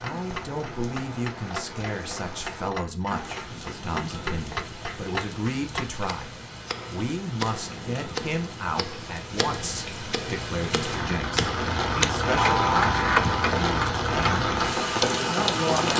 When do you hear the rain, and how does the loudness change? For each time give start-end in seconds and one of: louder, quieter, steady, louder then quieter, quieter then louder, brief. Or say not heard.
0.0-15.9 louder.